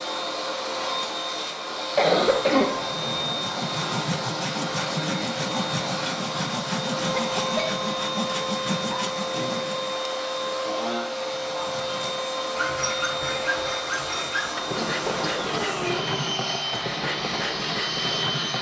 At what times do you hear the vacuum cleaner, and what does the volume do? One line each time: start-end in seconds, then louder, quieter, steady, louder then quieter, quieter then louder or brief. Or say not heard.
0.0-18.5 steady.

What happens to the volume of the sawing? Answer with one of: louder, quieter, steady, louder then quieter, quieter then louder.
steady.